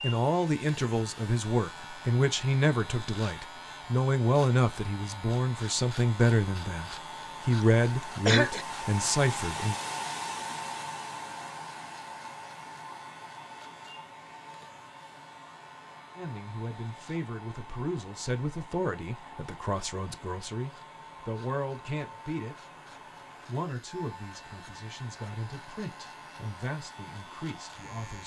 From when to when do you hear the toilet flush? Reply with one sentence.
You can't hear the toilet flush here.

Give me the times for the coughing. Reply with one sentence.
You can hear the coughing from 8.2 to 8.7 s.